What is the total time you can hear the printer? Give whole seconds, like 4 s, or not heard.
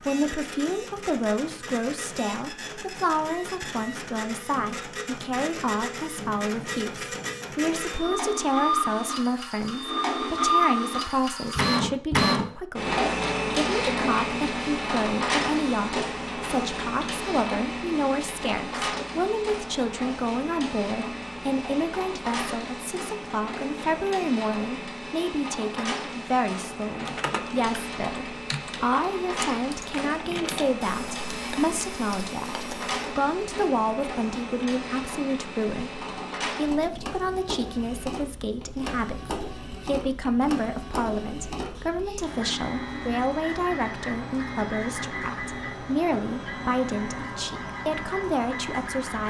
49 s.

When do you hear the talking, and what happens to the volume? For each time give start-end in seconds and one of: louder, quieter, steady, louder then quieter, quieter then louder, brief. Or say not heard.
0.0-49.2 steady.